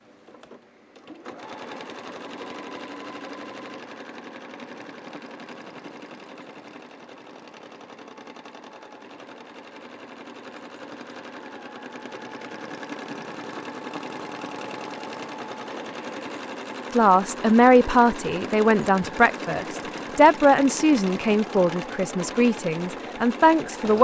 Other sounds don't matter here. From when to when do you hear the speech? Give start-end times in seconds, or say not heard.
16.9-23.9.